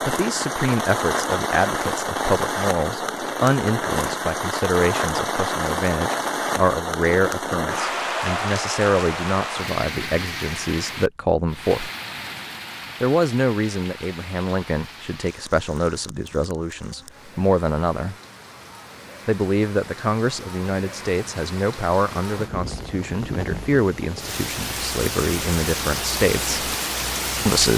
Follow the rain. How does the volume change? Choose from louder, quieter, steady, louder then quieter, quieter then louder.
quieter then louder.